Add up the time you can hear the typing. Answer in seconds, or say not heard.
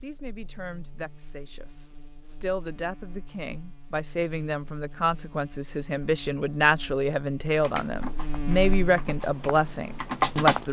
3 s.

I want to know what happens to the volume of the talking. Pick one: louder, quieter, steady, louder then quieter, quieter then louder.
louder.